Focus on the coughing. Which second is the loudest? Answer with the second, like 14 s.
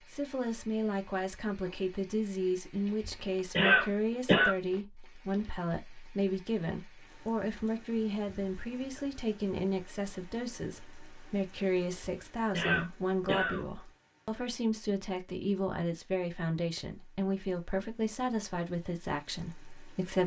4 s.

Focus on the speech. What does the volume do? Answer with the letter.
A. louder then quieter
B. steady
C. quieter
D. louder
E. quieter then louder
B.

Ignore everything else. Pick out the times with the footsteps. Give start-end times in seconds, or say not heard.
not heard.